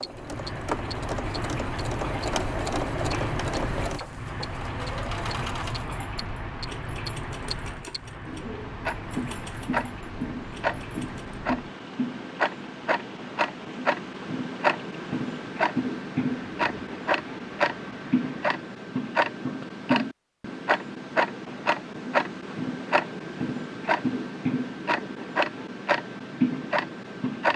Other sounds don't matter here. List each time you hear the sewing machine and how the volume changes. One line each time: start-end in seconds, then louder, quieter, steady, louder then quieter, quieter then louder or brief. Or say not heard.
0.0-11.4 quieter.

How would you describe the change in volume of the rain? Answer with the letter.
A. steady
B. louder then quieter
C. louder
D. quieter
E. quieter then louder
D.